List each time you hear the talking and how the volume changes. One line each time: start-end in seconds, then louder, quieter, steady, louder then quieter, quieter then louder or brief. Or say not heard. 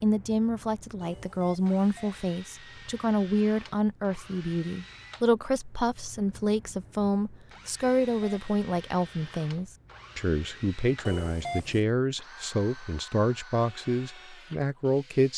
0.0-15.3 steady.